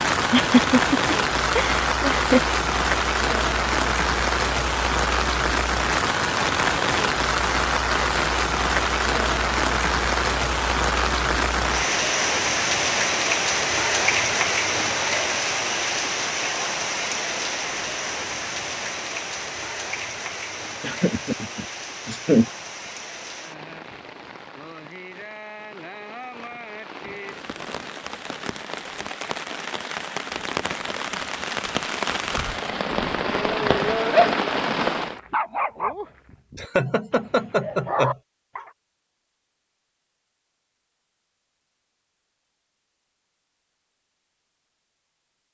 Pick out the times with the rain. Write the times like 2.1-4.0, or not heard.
0.0-35.2.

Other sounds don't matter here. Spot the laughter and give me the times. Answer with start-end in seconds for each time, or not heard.
0.3-2.4, 20.8-22.4, 36.5-38.1.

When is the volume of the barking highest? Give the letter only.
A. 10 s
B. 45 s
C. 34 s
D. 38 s
C.